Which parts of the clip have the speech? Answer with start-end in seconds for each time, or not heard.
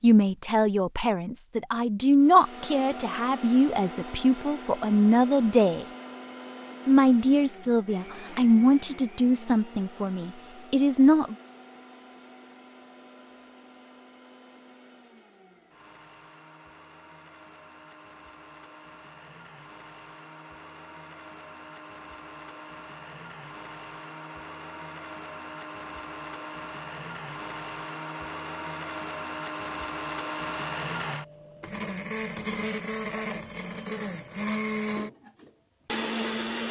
0.0-5.8, 6.8-11.3.